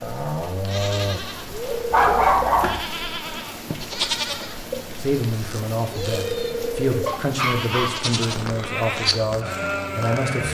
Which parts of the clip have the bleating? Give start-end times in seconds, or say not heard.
0.0-10.4.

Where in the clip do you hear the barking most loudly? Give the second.
2 s.